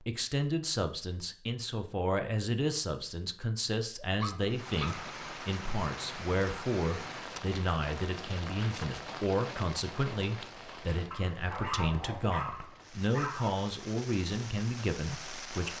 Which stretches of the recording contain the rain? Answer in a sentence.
You can hear the rain from 4.5 to 15.7 s.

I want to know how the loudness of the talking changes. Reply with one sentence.
The volume of the talking stays about the same.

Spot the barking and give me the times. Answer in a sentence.
The barking can be heard from 4.2 to 5.0 s and from 11.1 to 13.7 s.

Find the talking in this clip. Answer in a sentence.
You can hear the talking from 0.0 to 15.7 s.